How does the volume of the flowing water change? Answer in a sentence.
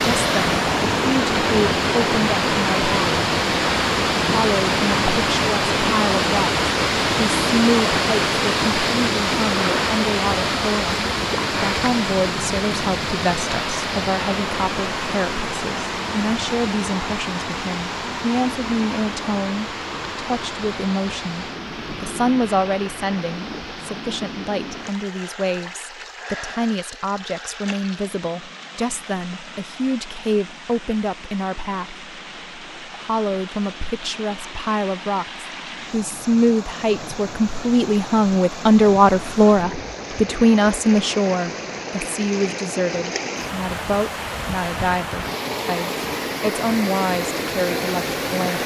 The volume of the flowing water goes down, then up.